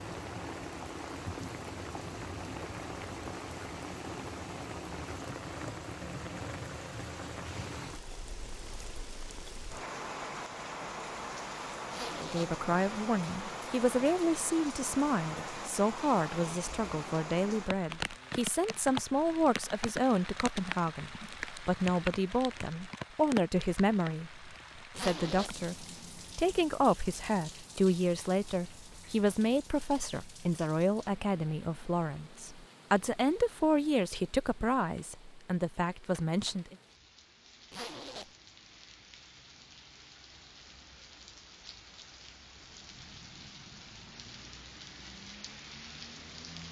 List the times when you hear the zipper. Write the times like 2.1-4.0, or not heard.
11.9-12.6, 24.9-25.6, 37.7-38.4.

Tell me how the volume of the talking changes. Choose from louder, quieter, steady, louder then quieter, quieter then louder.
steady.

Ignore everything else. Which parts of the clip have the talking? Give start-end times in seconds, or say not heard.
12.2-36.8.